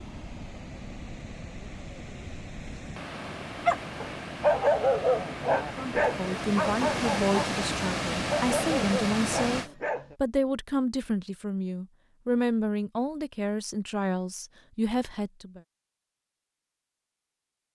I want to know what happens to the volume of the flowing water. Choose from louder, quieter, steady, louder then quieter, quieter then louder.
louder.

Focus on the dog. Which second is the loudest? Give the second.
5 s.